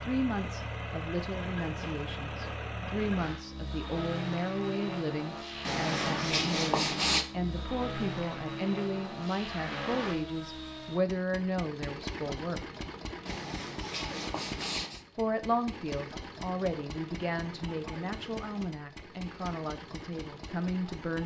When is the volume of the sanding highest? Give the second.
7 s.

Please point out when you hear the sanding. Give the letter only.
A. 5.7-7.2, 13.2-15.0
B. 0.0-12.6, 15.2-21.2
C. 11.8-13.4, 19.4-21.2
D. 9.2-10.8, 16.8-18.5
A.